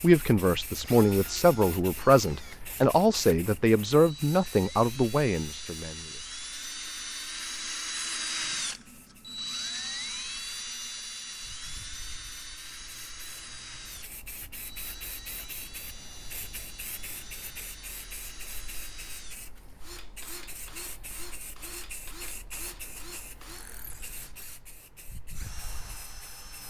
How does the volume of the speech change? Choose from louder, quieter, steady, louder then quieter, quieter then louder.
steady.